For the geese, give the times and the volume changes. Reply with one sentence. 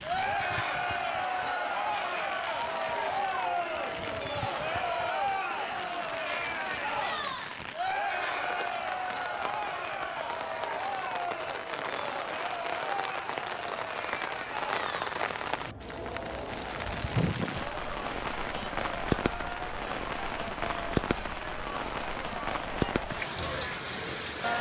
The geese can't be heard in this clip.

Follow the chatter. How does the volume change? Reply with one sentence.
The volume of the chatter goes down.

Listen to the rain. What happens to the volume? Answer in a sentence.
The volume of the rain goes up.